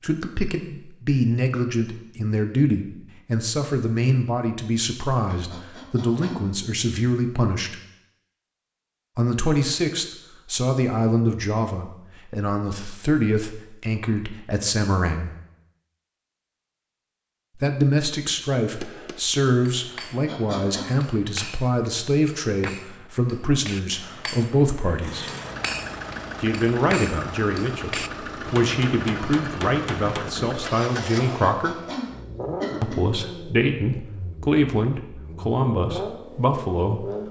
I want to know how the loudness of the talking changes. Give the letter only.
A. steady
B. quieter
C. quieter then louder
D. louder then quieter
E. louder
A.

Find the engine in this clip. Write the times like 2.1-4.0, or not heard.
25.0-37.2.